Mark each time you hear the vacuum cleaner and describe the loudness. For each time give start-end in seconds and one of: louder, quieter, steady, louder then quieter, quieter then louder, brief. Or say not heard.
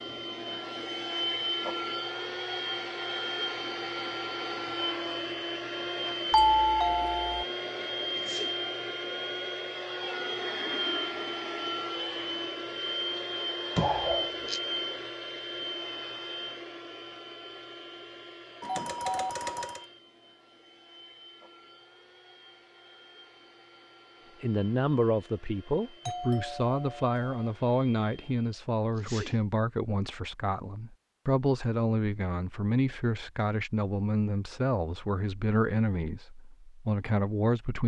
0.0-28.5 quieter.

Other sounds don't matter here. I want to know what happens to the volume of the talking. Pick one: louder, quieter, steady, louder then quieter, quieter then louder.
steady.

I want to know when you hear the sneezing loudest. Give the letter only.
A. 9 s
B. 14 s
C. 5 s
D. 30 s
B.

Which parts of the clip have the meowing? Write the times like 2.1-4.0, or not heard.
not heard.